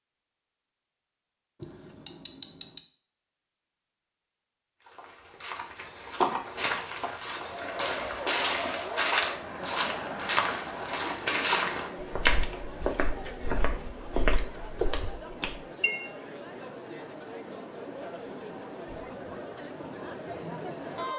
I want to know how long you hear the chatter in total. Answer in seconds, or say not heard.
14 s.